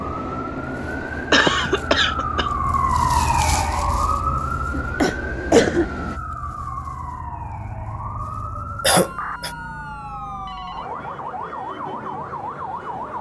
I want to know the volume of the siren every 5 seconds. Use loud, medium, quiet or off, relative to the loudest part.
loud, medium, medium.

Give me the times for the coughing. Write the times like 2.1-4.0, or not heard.
1.3-2.5, 4.7-5.8, 8.8-9.5.